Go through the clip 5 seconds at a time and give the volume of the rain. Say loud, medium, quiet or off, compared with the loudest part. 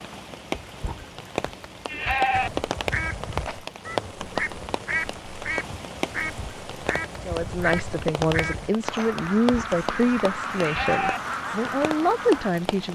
loud, loud, medium.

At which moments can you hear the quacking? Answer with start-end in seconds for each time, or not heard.
2.3-12.5.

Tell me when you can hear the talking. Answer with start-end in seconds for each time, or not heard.
7.2-12.8.